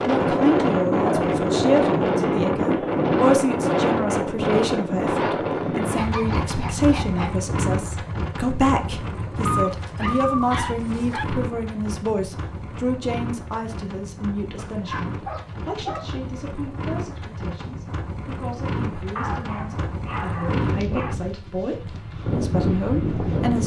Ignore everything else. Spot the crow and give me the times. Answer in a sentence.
The crow can't be heard in this clip.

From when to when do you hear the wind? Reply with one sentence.
You can hear the wind from 0.0 to 23.6 s.